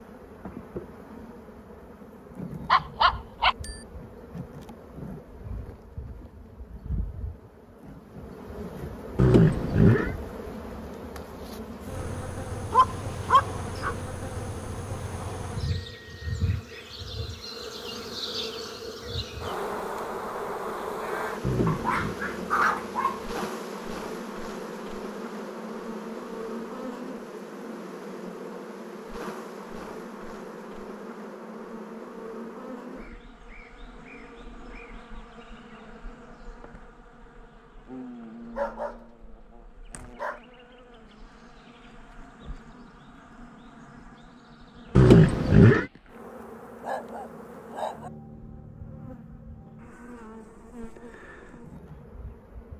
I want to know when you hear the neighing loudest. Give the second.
45 s.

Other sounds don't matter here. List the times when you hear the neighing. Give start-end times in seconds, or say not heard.
9.2-10.2, 21.4-22.1, 45.0-45.9.